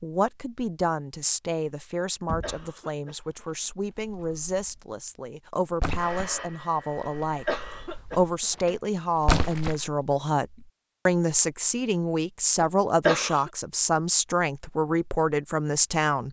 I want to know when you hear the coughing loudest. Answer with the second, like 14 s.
13 s.